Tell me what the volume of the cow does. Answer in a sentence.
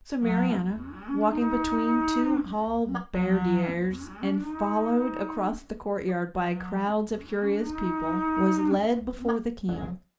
The volume of the cow goes down, then up.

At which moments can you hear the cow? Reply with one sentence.
You can hear the cow from 0.2 to 9.9 s.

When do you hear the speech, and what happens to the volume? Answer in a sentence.
You can hear the speech from 0.1 to 9.9 s, at a steady volume.